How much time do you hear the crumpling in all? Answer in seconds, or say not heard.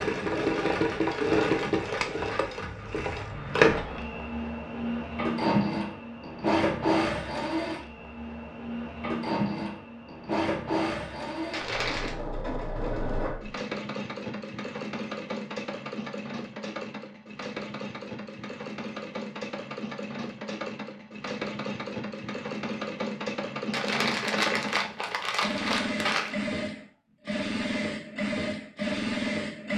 3 s.